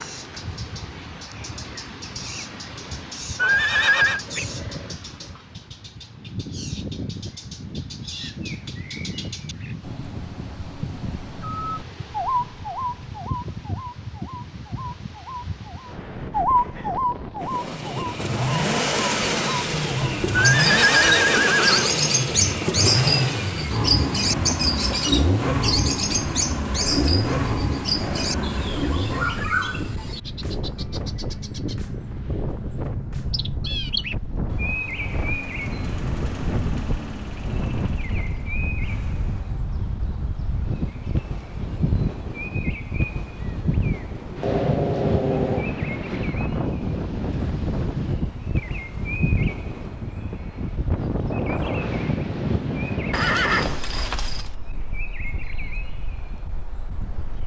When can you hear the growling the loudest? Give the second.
45 s.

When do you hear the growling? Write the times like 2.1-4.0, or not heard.
4.2-5.4, 26.8-28.6, 44.3-45.8.